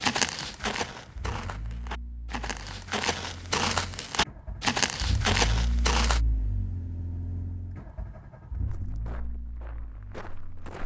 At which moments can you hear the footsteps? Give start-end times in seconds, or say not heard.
0.0-6.2, 8.7-10.8.